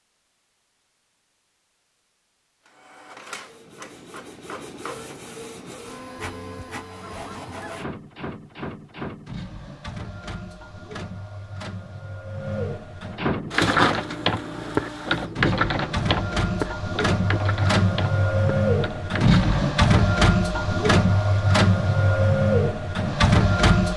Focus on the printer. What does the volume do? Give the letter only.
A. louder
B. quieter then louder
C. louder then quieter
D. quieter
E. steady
A.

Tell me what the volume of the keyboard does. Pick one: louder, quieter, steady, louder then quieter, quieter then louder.
quieter.